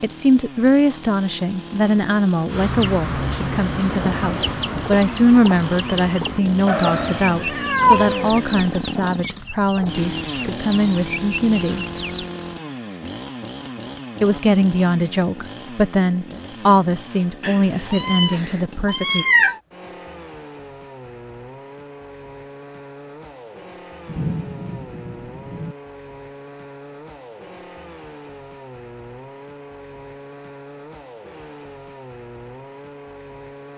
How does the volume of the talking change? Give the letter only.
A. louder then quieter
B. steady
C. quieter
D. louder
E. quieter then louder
B.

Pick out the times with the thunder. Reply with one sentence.
The thunder can be heard from 3.0 to 4.8 s and from 24.1 to 25.8 s.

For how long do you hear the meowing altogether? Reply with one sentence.
You can hear the meowing for 4 seconds altogether.